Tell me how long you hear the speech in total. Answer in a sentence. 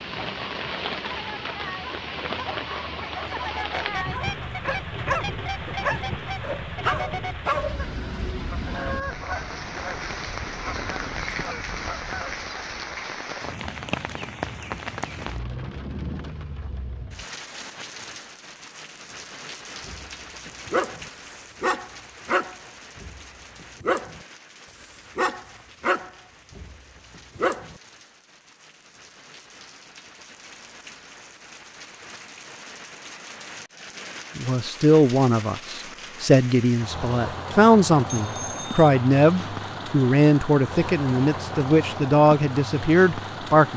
The speech can be heard for 9 seconds in total.